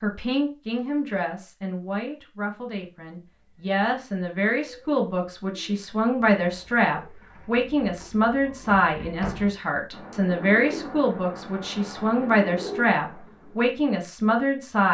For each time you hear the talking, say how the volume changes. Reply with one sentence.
The talking can be heard from 0.0 to 14.8 s, getting louder.